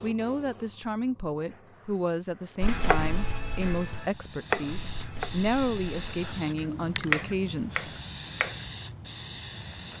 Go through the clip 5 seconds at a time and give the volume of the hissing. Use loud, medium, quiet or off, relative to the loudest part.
medium, loud.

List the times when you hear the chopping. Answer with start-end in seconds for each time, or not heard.
2.6-8.7.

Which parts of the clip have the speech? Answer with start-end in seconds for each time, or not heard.
0.0-8.0.